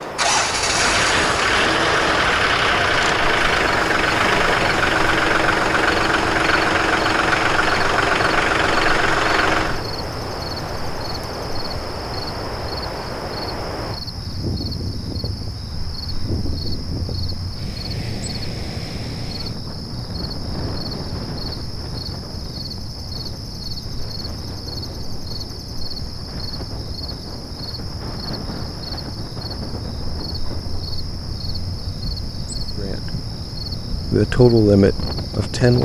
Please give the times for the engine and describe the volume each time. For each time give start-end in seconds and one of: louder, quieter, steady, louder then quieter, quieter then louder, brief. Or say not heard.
0.0-9.8 steady.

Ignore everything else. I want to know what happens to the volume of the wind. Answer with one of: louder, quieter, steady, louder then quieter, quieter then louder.
quieter.